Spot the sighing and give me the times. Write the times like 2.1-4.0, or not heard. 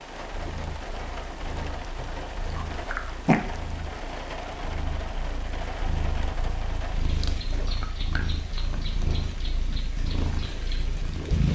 not heard.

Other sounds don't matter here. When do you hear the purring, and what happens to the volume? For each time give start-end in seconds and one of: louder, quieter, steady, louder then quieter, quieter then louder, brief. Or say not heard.
0.2-11.5 louder.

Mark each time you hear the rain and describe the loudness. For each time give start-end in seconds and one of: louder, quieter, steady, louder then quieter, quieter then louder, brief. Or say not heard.
0.0-11.5 steady.